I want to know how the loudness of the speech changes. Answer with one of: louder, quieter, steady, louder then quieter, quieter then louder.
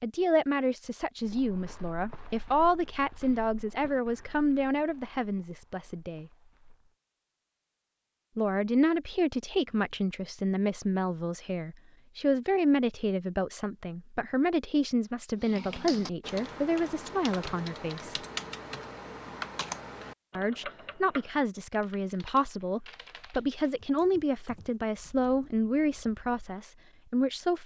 steady.